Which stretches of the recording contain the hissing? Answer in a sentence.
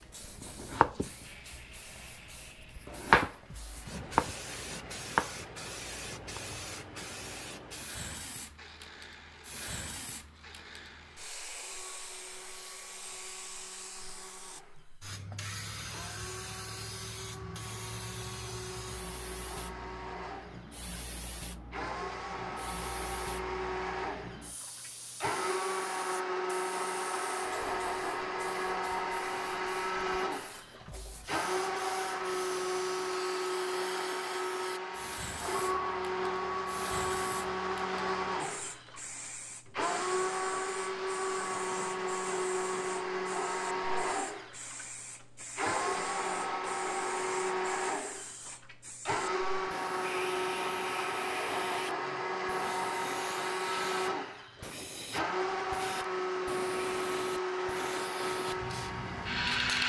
The hissing can be heard from 0.0 to 59.8 s.